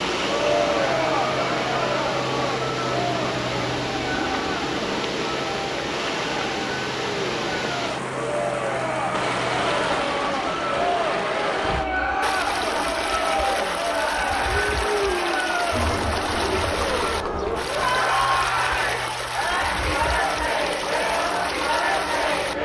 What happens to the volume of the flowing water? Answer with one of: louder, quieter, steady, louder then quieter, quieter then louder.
steady.